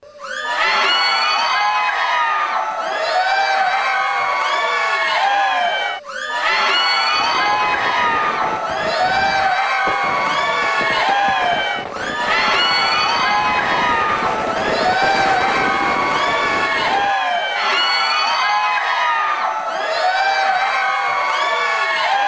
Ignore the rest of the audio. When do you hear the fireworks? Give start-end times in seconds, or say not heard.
7.1-17.1.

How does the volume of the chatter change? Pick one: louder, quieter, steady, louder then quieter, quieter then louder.
steady.